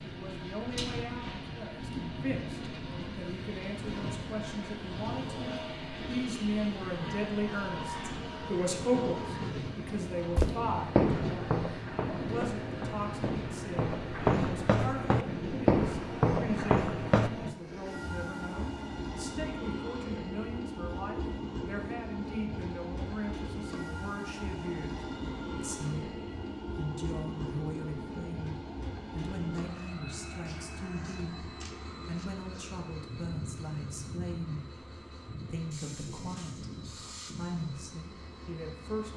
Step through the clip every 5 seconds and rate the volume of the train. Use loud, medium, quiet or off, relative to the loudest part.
loud, loud, loud, loud, loud, loud, medium, medium.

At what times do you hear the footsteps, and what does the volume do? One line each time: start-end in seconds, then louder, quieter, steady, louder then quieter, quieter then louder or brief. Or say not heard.
10.3-17.3 quieter then louder.